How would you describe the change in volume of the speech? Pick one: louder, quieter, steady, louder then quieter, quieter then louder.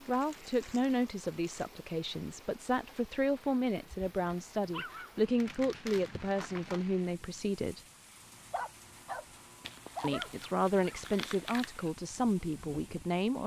steady.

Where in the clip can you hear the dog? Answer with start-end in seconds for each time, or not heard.
3.9-5.2, 8.2-11.1.